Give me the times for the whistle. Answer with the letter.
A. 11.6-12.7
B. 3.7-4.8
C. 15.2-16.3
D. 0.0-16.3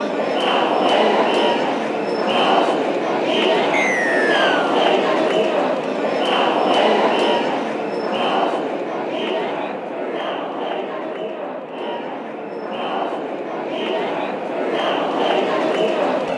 B.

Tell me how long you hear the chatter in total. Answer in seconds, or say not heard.
16 s.